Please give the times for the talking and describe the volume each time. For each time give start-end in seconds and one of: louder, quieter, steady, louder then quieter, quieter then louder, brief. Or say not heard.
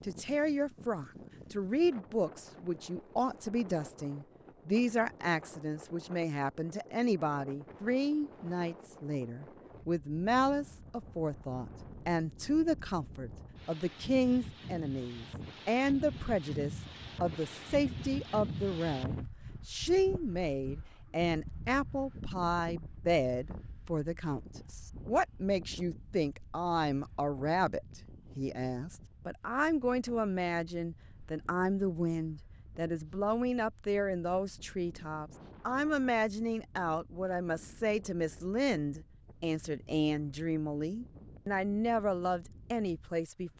0.0-43.5 steady.